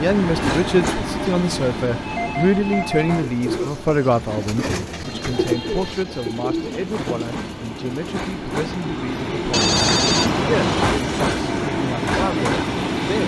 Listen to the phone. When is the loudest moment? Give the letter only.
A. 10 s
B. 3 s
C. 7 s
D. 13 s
A.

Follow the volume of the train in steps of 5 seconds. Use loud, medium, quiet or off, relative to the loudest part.
medium, medium, loud.